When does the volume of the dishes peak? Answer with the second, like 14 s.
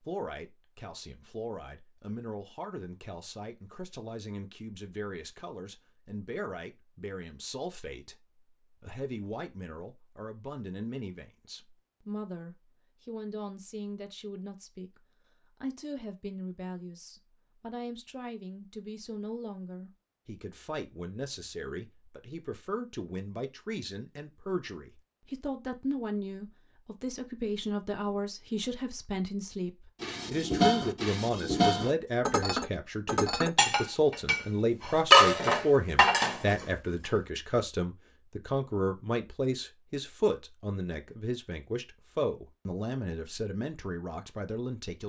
35 s.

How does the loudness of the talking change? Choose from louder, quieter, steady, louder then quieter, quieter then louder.
louder.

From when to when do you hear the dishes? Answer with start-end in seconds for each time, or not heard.
30.0-37.1.